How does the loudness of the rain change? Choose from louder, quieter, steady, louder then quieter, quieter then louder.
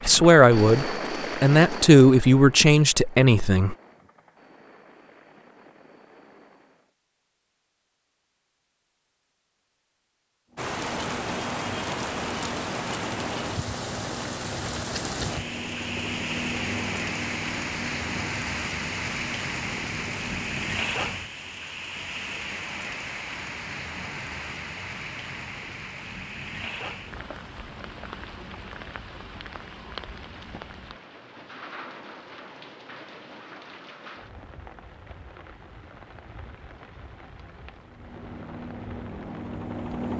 quieter.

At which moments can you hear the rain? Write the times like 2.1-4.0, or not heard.
10.6-40.1.